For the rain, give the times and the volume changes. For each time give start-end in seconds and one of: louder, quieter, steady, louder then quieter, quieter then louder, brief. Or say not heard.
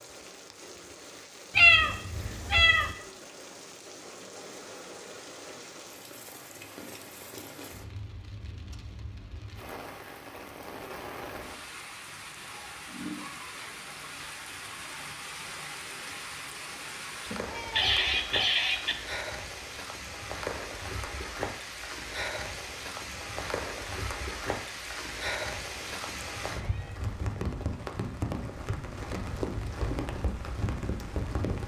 0.0-31.6 louder.